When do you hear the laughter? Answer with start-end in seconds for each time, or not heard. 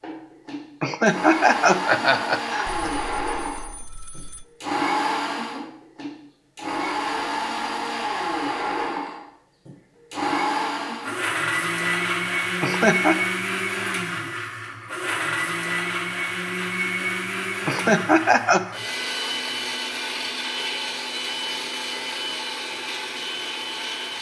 0.8-2.9, 12.6-13.2, 17.6-18.8.